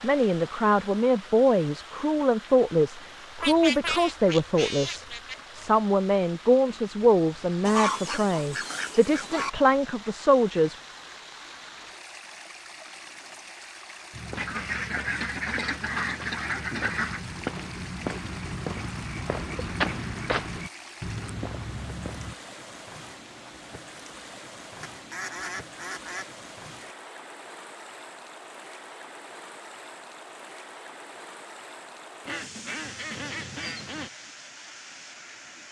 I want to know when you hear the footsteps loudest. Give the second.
20 s.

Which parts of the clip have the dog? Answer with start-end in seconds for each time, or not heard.
not heard.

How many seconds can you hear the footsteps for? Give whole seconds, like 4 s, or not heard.
8 s.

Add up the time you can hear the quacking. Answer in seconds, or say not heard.
10 s.